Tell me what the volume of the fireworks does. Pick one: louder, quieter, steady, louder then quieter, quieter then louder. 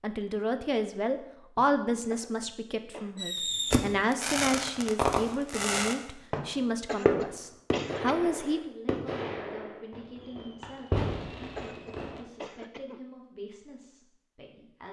quieter.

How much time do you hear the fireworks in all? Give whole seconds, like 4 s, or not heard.
9 s.